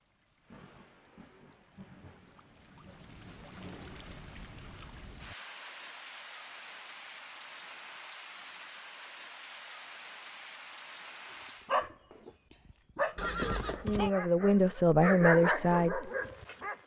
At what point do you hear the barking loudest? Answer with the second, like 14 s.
15 s.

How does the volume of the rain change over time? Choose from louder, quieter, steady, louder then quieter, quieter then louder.
louder.